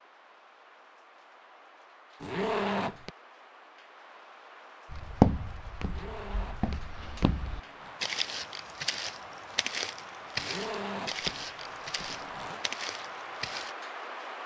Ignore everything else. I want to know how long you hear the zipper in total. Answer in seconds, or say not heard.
5 s.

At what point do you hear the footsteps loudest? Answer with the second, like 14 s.
5 s.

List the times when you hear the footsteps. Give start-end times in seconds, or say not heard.
4.9-13.8.